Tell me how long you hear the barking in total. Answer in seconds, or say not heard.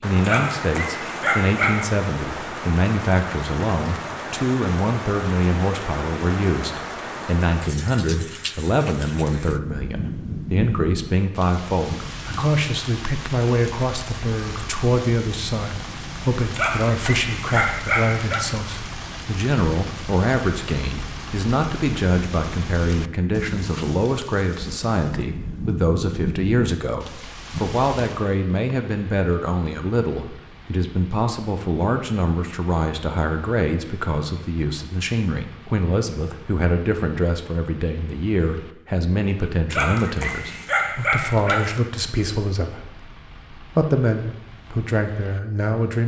6 s.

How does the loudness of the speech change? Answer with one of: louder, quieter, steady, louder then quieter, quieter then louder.
steady.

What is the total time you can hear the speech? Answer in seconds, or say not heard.
46 s.